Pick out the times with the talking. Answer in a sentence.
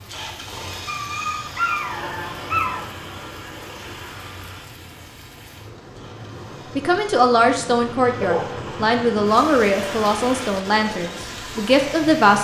The talking can be heard from 6.8 to 12.3 s.